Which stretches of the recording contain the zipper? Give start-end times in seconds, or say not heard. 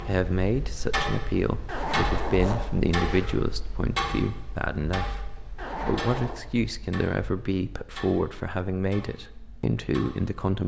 1.6-3.4, 5.5-6.3.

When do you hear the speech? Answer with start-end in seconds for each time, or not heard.
0.0-10.6.